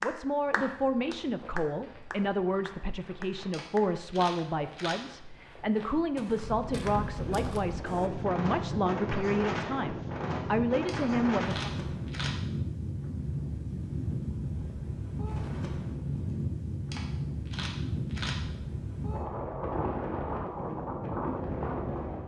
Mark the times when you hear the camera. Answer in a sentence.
The camera can be heard from 3.5 to 5.0 s, from 10.8 to 12.3 s and from 16.9 to 18.4 s.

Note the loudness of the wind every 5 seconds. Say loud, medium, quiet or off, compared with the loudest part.
off, loud, loud, loud, loud.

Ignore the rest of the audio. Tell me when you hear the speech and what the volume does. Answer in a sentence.
You can hear the speech from 0.0 to 11.7 s, at a steady volume.